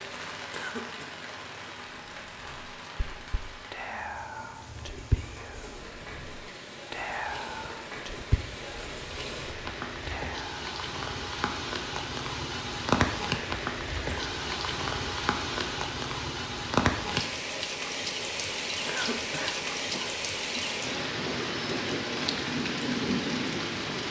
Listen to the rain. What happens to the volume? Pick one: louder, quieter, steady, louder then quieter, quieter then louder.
louder.